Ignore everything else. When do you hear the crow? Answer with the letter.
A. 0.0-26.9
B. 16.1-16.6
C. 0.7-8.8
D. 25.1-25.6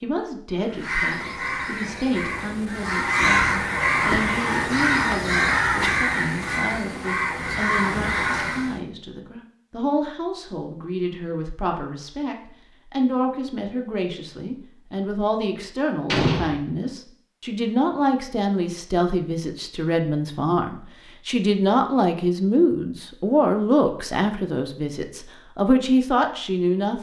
C.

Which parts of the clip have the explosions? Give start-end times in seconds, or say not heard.
16.1-16.6.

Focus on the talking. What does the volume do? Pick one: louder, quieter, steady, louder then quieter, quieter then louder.
louder.